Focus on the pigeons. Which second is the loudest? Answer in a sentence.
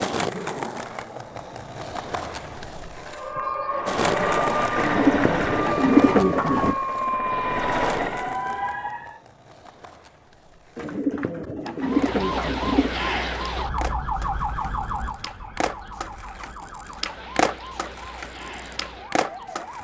The volume of the pigeons peaks at 6 seconds.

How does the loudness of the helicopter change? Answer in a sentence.
The loudness of the helicopter goes down, then up.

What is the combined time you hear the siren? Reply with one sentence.
You can hear the siren for 14 seconds altogether.